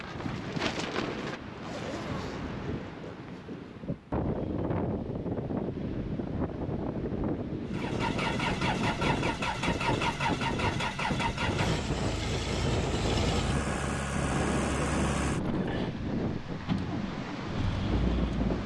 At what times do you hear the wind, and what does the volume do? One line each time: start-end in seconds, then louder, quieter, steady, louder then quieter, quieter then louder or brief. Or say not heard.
0.0-18.6 steady.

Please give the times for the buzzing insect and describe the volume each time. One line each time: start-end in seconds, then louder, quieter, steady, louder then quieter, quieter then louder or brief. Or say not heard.
not heard.